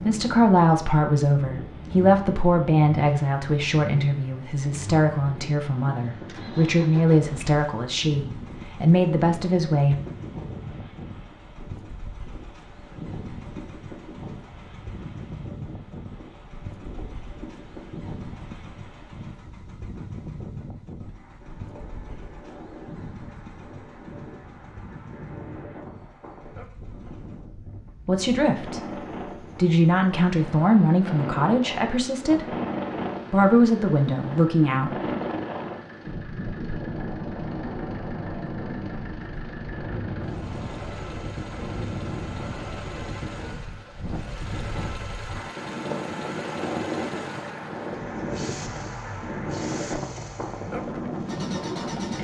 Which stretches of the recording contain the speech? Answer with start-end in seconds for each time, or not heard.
0.0-9.9, 28.1-28.9, 29.6-32.5, 33.3-35.1.